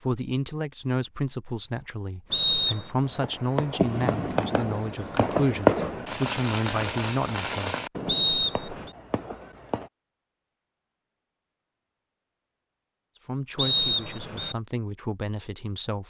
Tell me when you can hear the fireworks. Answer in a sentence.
You can hear the fireworks from 3.0 to 9.9 s.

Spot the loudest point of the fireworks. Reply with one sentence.
The volume of the fireworks peaks at 6 seconds.